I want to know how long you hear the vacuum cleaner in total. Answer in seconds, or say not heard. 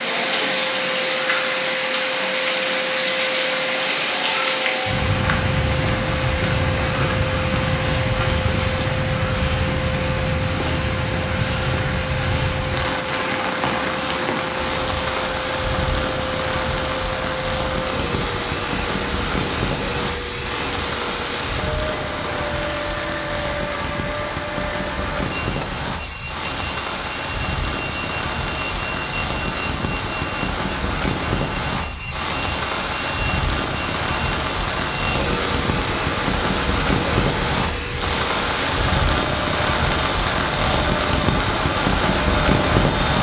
43 s.